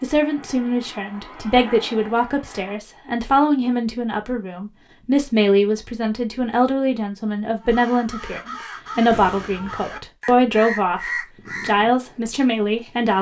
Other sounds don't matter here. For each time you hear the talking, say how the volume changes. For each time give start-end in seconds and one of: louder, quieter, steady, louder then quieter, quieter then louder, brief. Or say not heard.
0.0-13.1 steady.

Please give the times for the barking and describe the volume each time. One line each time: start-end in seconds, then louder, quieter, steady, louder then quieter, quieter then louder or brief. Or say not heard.
not heard.